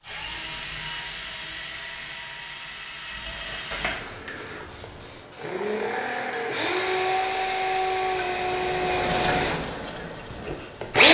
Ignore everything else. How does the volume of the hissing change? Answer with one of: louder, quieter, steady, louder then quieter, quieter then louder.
louder.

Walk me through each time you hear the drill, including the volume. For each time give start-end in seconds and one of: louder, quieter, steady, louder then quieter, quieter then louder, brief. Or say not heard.
0.0-11.0 louder.